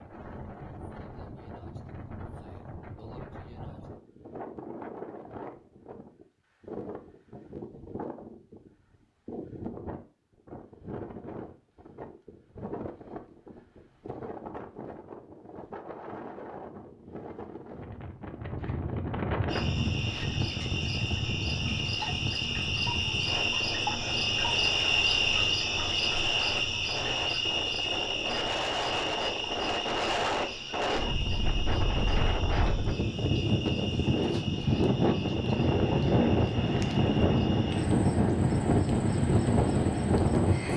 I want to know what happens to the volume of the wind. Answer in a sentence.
The loudness of the wind goes up.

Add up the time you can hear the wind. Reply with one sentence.
You can hear the wind for 41 seconds altogether.